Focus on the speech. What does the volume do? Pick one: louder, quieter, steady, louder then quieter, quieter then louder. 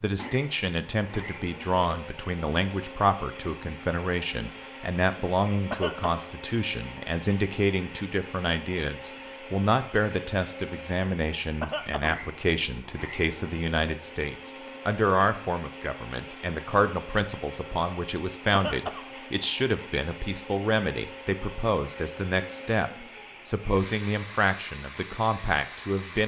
steady.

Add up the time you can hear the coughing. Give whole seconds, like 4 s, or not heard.
2 s.